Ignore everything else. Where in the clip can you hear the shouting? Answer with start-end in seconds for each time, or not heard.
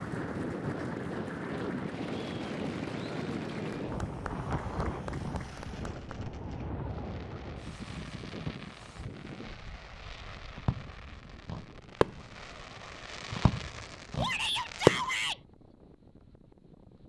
14.2-15.4.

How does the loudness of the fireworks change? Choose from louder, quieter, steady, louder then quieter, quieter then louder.
louder.